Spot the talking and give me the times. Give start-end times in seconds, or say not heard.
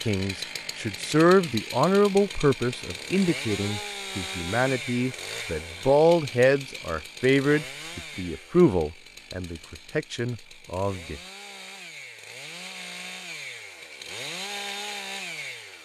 0.1-11.2.